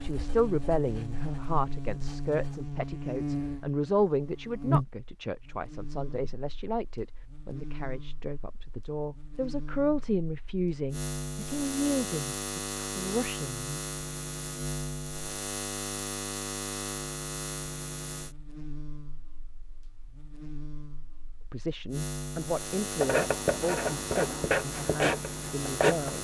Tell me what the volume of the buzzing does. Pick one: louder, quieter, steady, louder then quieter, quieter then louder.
quieter then louder.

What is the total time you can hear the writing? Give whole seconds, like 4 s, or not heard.
6 s.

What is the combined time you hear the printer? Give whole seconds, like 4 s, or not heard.
not heard.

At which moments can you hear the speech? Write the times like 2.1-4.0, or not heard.
0.0-13.8, 21.5-26.1.